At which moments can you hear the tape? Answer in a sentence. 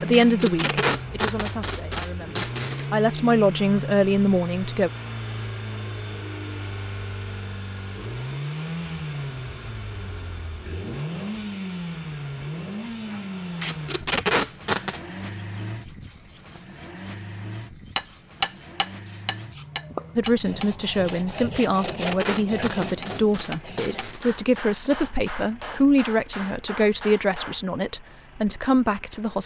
The tape can be heard from 0.1 to 2.9 s, from 13.6 to 15.0 s and from 21.6 to 24.2 s.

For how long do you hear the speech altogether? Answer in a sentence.
You can hear the speech for 14 seconds altogether.